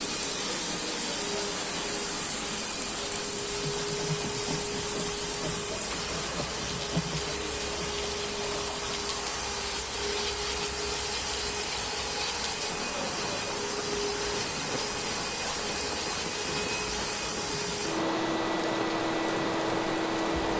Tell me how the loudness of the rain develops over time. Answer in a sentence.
The loudness of the rain stays about the same.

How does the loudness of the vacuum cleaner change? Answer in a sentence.
The loudness of the vacuum cleaner stays about the same.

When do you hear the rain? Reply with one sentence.
You can hear the rain from 0.0 to 20.5 s.